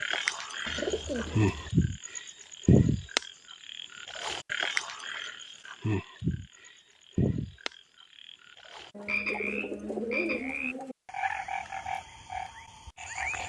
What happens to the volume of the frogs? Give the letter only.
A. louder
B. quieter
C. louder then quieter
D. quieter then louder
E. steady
B.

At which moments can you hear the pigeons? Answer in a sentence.
You can hear the pigeons from 0.7 to 1.7 s and from 8.9 to 10.9 s.